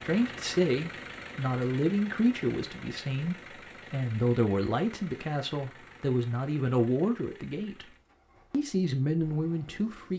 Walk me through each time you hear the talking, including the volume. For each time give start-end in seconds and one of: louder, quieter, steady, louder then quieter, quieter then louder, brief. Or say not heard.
0.0-10.1 steady.